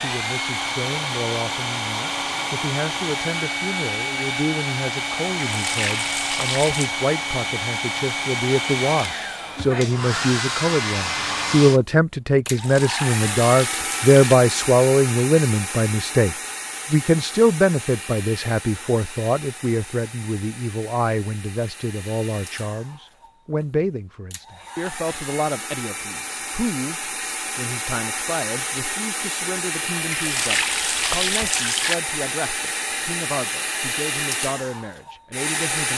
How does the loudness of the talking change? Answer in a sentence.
The loudness of the talking goes up, then down.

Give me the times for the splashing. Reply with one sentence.
The splashing can be heard from 5.5 to 6.9 s, from 12.4 to 14.3 s and from 30.1 to 31.9 s.